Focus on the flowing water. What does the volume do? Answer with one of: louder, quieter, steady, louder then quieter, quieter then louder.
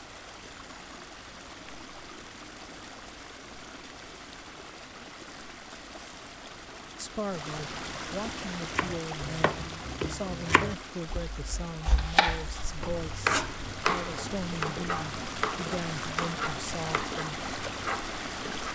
louder.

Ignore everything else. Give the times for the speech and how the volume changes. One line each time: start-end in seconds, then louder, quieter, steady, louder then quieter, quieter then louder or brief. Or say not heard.
7.0-17.4 steady.